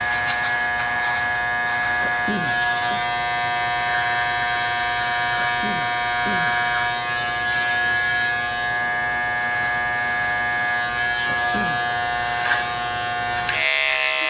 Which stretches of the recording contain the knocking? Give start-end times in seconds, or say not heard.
not heard.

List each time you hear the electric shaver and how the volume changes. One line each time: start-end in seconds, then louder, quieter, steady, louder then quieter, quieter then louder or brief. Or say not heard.
0.0-14.2 steady.